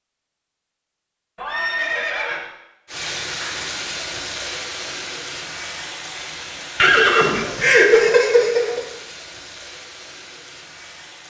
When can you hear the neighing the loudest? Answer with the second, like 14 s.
8 s.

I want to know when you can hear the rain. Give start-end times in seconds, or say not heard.
2.9-11.2.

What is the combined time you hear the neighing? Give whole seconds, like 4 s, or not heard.
3 s.